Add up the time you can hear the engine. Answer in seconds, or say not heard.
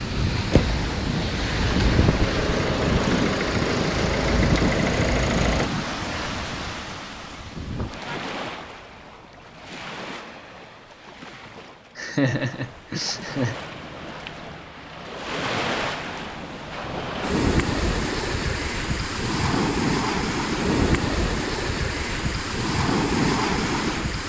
6 s.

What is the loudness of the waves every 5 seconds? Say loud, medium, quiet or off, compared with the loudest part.
loud, medium, quiet, loud, loud.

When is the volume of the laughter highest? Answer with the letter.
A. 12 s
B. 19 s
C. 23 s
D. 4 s
A.